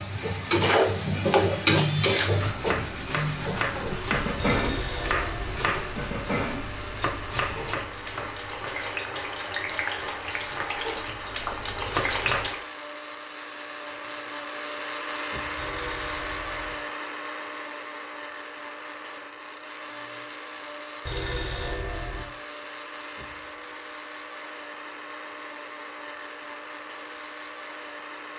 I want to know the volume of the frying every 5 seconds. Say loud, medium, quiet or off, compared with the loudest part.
loud, medium, medium, off, off, off.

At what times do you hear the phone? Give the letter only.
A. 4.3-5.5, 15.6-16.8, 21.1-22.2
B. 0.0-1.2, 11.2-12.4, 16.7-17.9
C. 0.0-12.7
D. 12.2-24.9
A.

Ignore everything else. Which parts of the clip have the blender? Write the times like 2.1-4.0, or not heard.
0.0-28.3.